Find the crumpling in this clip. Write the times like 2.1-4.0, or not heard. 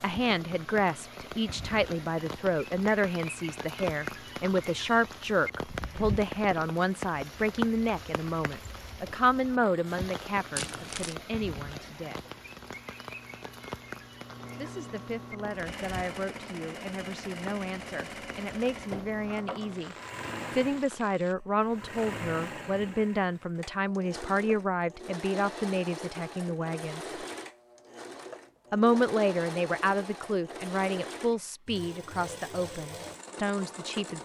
10.6-11.2.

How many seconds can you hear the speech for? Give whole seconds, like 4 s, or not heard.
30 s.